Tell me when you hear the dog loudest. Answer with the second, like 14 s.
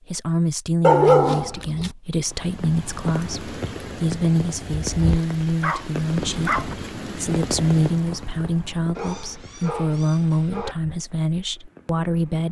1 s.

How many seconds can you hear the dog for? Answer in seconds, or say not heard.
5 s.